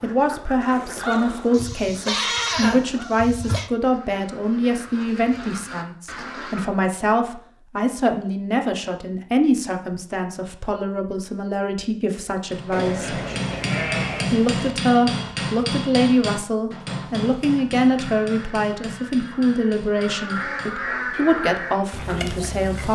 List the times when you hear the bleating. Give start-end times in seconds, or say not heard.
1.5-3.7, 12.7-14.8.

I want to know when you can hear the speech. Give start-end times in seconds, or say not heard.
0.0-13.2, 14.3-22.9.